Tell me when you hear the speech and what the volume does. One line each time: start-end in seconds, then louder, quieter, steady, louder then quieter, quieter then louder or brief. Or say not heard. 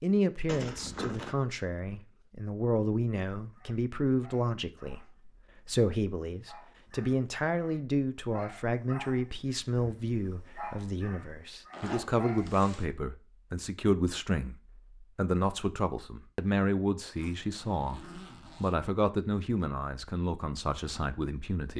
0.0-21.7 steady.